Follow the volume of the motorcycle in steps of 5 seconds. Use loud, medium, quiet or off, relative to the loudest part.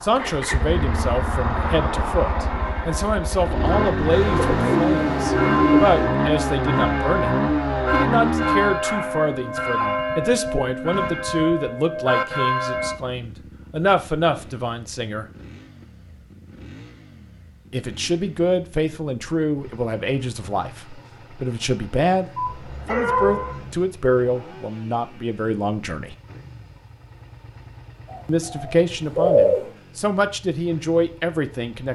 loud, loud, quiet, quiet, quiet, quiet, quiet.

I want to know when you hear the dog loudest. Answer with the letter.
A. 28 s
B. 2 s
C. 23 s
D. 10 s
C.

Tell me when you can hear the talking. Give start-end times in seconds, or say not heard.
0.0-15.2, 17.7-26.1, 28.2-31.9.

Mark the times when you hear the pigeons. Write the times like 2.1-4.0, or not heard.
4.1-6.2, 28.1-29.6.